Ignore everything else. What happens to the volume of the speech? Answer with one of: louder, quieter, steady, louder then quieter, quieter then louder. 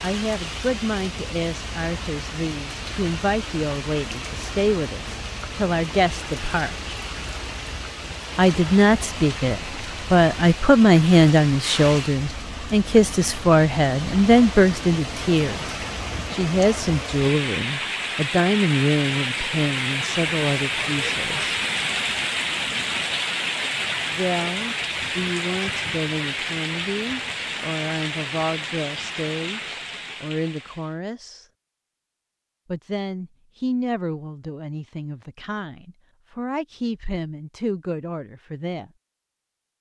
louder then quieter.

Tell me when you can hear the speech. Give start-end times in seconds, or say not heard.
0.0-6.8, 8.3-21.6, 24.1-31.4, 32.6-38.9.